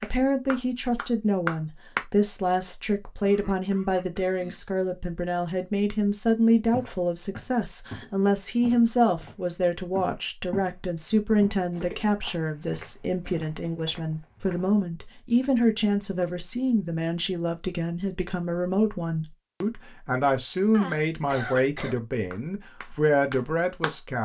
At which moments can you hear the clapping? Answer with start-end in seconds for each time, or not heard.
0.0-2.0, 22.3-23.9.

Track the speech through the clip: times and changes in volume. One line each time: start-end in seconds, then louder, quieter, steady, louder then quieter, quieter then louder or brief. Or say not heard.
0.0-24.1 steady.